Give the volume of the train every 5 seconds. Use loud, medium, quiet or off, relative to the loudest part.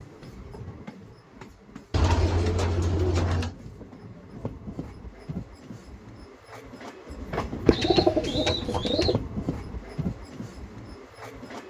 medium, loud, loud.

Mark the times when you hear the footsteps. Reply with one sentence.
You can't hear the footsteps here.